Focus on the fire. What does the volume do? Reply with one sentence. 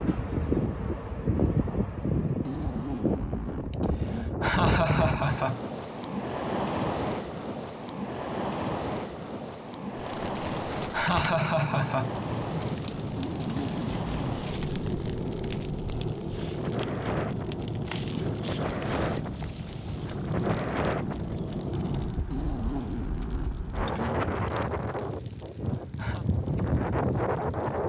The volume of the fire goes down.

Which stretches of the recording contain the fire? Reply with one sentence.
The fire can be heard from 9.9 to 27.8 s.